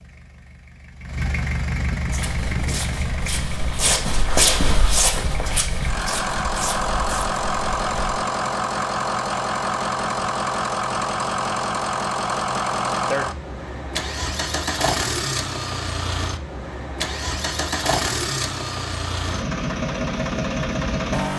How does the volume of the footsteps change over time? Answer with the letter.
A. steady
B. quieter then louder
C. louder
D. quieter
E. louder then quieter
E.